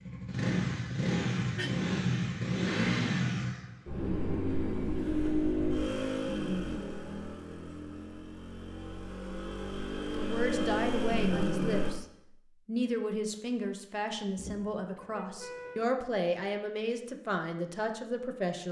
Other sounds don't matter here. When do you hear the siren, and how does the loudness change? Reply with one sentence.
The siren can't be heard in this clip.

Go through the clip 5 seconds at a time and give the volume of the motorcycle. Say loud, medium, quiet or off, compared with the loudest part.
loud, loud, loud, off.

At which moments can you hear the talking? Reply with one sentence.
You can hear the talking from 10.2 to 12.1 s and from 12.7 to 18.6 s.